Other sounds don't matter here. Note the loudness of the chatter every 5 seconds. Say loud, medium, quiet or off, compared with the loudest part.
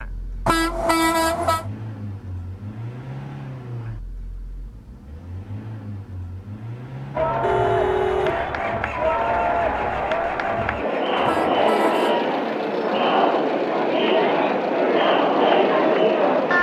off, medium, loud, loud.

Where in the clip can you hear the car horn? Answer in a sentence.
The car horn can be heard from 0.5 to 1.6 s, from 7.4 to 8.6 s and from 11.2 to 12.2 s.